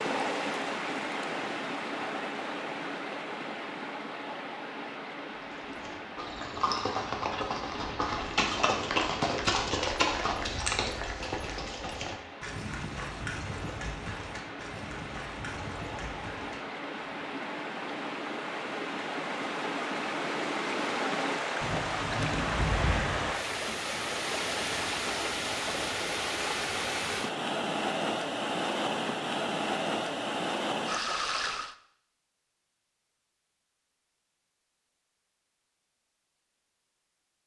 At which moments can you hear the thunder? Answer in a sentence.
The thunder can be heard from 21.6 to 23.4 s.